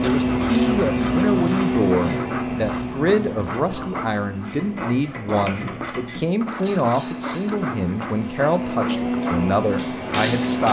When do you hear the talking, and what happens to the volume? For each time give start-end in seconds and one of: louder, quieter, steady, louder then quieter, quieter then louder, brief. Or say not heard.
0.0-10.6 steady.